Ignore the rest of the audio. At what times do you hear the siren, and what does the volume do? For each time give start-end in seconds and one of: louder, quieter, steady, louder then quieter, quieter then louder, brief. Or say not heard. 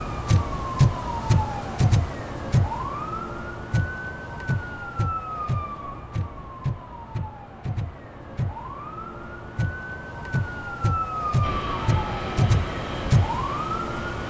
0.0-14.2 quieter then louder.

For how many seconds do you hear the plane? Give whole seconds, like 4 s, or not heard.
3 s.